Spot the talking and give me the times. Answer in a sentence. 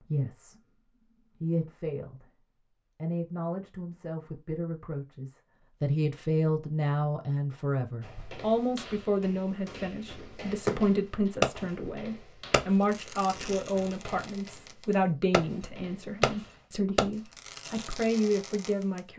You can hear the talking from 0.0 to 2.2 s and from 3.0 to 19.1 s.